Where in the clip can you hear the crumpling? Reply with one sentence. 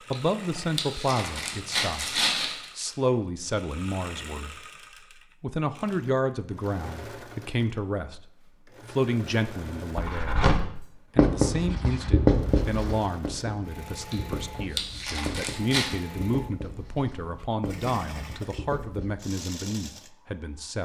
You can hear the crumpling from 0.1 to 2.6 s and from 14.1 to 15.9 s.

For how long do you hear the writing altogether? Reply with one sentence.
The writing can be heard for 9 seconds in total.